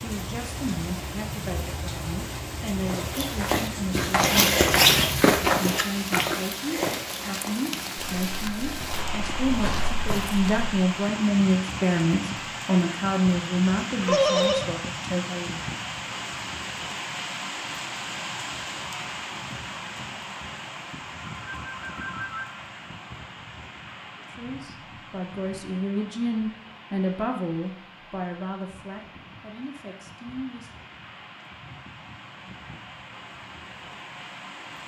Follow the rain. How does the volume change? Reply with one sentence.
The volume of the rain goes down.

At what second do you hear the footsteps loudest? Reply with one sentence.
The volume of the footsteps peaks at 5 seconds.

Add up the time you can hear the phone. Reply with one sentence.
The phone can be heard for 2 seconds in total.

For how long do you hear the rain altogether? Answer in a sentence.
You can hear the rain for 35 seconds altogether.